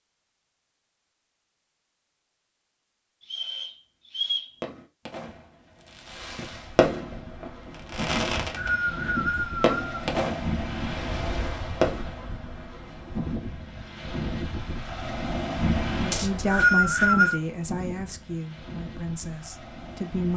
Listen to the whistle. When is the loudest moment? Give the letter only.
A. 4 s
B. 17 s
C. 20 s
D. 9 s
B.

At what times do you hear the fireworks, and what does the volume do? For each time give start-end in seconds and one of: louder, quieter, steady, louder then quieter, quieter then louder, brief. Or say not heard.
4.6-12.1 louder then quieter.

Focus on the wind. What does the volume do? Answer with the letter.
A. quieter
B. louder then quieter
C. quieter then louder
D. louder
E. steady
B.